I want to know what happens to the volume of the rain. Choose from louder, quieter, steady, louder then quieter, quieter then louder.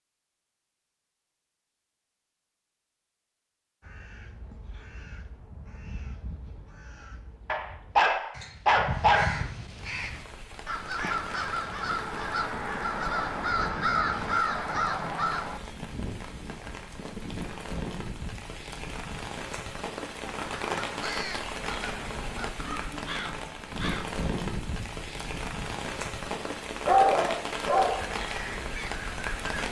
louder.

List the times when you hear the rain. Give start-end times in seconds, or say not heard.
9.7-29.6.